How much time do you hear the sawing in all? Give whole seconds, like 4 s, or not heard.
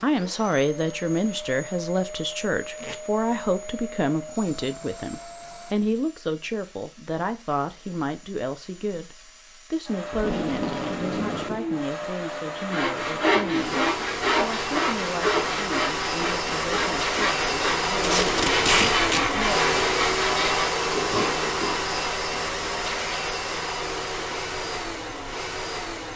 9 s.